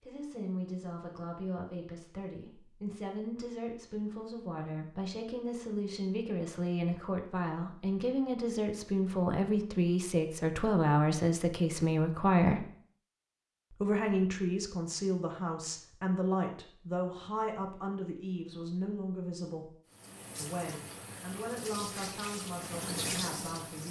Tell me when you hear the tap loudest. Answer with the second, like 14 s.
23 s.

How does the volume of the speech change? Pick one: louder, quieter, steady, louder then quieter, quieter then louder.
louder then quieter.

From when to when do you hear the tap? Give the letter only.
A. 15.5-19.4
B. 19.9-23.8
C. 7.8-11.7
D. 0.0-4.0
B.